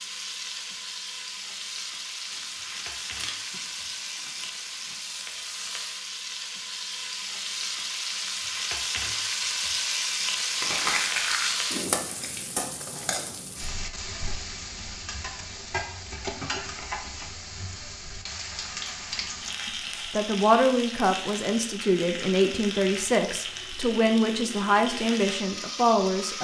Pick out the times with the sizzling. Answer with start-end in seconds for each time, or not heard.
0.0-26.3.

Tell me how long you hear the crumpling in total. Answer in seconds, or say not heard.
6 s.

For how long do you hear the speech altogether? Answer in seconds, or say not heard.
7 s.